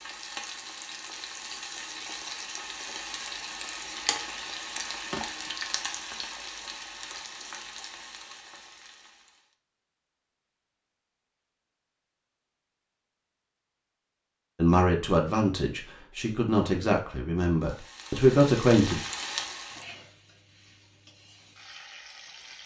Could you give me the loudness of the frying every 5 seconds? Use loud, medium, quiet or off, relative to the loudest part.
loud, loud, off, loud, quiet.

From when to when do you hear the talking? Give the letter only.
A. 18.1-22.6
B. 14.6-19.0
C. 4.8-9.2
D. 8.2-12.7
B.